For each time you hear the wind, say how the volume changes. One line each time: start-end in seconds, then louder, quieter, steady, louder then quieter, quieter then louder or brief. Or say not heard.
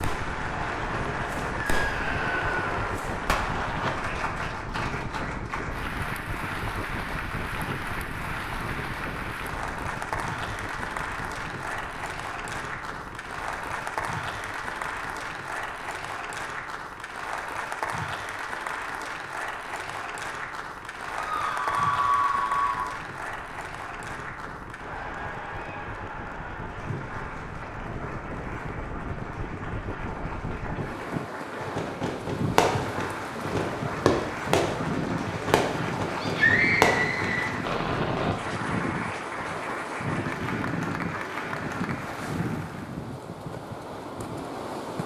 0.0-45.0 quieter then louder.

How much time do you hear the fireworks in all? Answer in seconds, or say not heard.
11 s.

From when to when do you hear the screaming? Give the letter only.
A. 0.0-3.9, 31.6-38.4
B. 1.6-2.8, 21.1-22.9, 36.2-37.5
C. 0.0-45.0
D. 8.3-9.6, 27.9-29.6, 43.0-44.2
B.